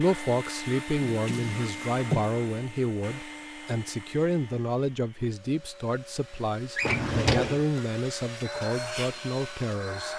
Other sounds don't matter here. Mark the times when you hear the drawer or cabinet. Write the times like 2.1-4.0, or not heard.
1.1-2.3, 6.8-7.6.